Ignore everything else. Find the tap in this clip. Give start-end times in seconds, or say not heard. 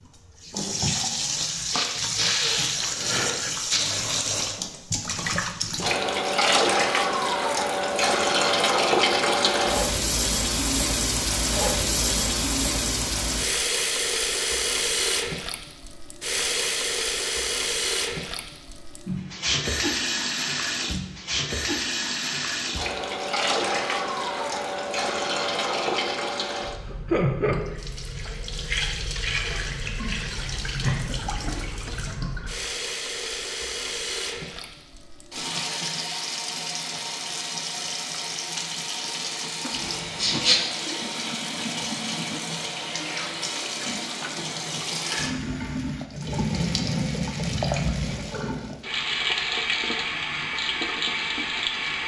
0.1-52.0.